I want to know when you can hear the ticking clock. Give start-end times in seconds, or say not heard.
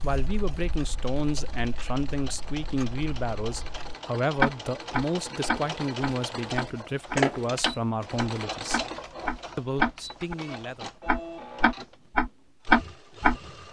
0.0-10.3, 11.1-13.3.